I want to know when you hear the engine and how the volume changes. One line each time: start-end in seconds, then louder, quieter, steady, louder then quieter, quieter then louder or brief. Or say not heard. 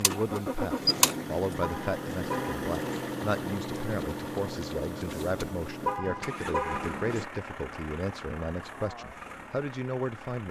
0.0-10.4 quieter.